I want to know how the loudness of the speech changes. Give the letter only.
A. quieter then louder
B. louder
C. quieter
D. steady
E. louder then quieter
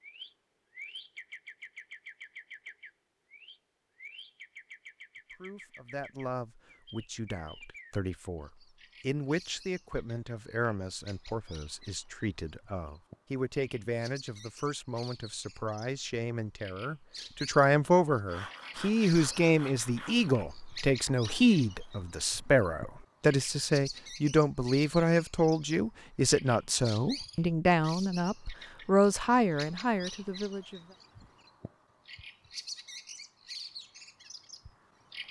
B.